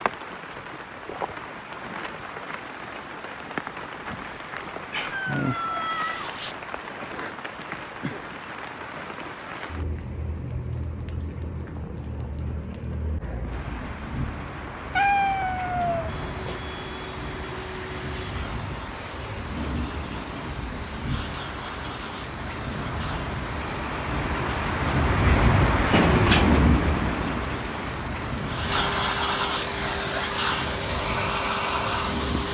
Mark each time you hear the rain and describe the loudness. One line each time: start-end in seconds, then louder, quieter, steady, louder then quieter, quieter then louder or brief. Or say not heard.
0.0-32.4 louder.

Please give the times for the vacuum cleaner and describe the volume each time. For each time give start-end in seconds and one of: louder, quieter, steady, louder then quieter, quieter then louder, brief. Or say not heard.
16.1-32.4 louder.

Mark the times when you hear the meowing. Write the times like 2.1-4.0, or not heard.
4.9-6.5, 14.9-16.6, 25.9-27.0.